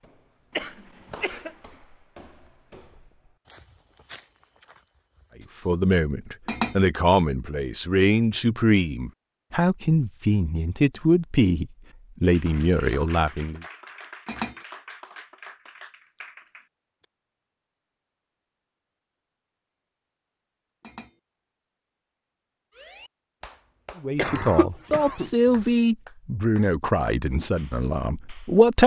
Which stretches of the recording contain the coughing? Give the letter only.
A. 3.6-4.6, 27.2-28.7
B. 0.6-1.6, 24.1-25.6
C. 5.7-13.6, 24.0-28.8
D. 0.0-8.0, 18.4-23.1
B.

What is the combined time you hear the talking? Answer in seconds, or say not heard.
13 s.